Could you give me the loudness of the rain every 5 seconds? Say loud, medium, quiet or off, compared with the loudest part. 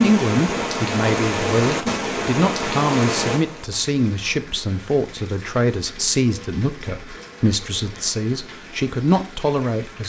loud, quiet.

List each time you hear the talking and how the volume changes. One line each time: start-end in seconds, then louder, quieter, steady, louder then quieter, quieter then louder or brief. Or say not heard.
0.0-10.0 steady.